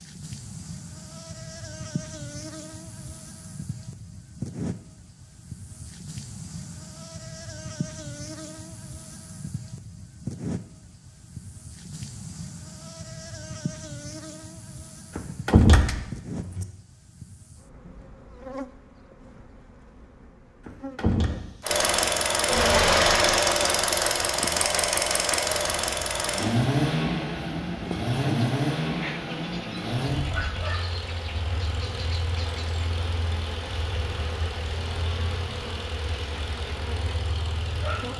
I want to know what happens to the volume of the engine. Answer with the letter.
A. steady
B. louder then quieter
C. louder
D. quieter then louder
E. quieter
E.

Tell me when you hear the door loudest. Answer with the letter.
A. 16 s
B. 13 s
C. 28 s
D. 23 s
A.